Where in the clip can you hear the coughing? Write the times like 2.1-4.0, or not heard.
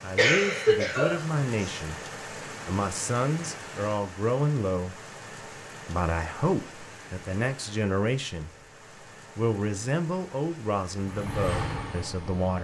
0.1-1.8.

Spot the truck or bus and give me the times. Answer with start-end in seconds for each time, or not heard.
10.9-12.5.